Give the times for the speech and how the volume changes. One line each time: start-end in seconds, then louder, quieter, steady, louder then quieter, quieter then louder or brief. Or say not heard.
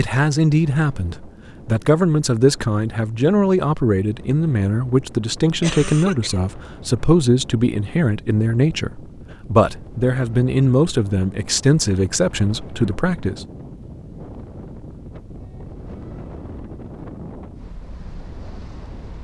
0.0-13.4 steady.